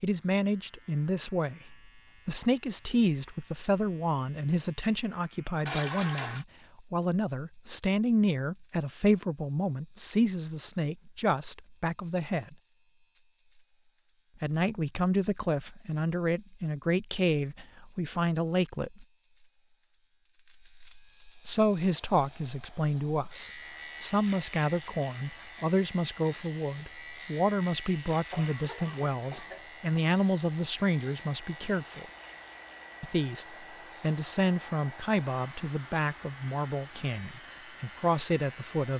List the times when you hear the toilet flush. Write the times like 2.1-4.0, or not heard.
5.7-6.5.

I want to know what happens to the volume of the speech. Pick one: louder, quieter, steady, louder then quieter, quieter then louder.
steady.